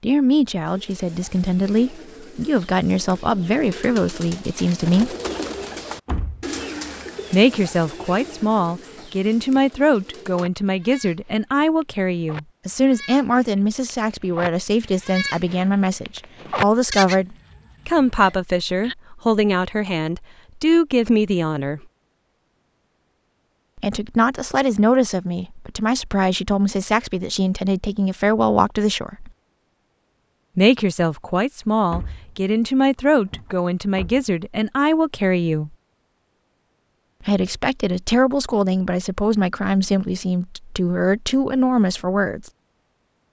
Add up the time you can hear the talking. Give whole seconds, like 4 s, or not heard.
36 s.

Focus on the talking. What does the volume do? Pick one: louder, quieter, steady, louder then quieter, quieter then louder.
steady.